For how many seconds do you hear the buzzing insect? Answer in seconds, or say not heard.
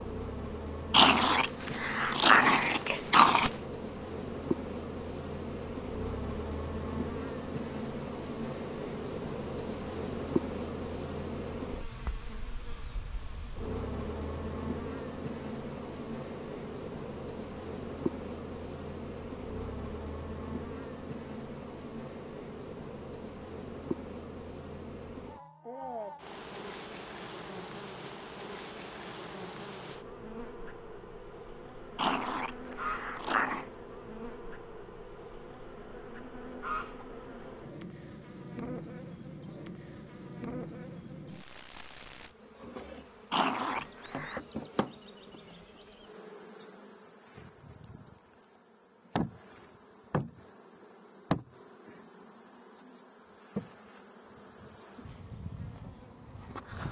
57 s.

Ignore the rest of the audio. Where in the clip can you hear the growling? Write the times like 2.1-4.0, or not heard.
0.9-3.5, 31.9-33.6, 43.3-44.4.